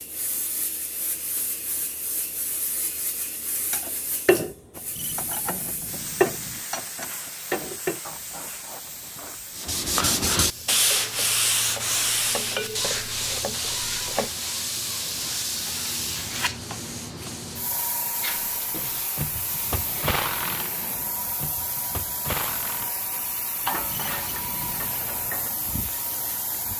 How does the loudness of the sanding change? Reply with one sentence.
The volume of the sanding goes down.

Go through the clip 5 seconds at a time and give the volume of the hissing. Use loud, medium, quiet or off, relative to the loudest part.
medium, medium, loud, loud, loud, loud.